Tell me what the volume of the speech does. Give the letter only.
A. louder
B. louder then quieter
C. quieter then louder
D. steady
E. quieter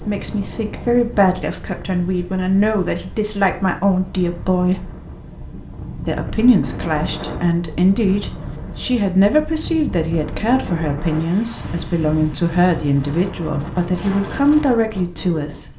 D.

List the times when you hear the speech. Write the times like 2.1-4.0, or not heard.
0.0-4.9, 6.0-15.7.